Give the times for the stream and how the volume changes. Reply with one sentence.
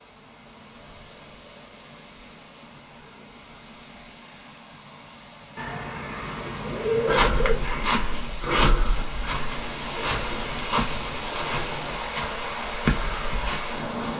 You can hear the stream from 0.0 to 14.1 s, getting louder.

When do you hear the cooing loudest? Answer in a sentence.
The loudest moment of the cooing is at 7 seconds.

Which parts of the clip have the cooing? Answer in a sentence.
The cooing can be heard from 5.5 to 7.7 s.